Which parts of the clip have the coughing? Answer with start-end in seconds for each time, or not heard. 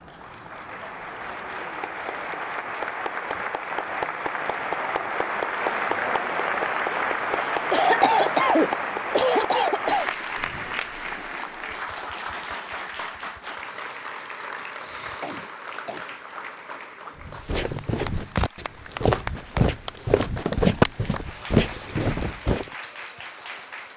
7.3-10.1, 15.2-16.1.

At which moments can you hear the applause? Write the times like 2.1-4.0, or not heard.
0.0-23.9.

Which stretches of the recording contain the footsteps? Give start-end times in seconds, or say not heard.
17.2-22.7.